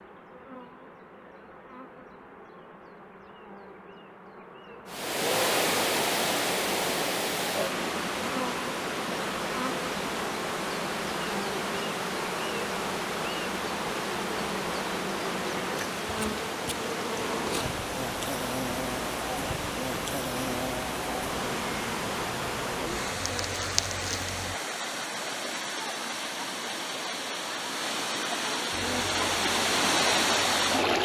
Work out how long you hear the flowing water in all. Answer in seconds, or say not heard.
26 s.